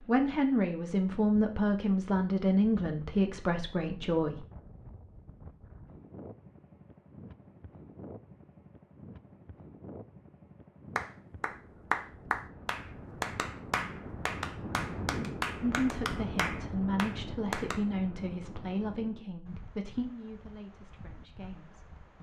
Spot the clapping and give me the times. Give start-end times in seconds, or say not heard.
10.9-17.8.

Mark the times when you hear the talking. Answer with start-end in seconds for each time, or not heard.
0.1-4.5, 15.6-22.1.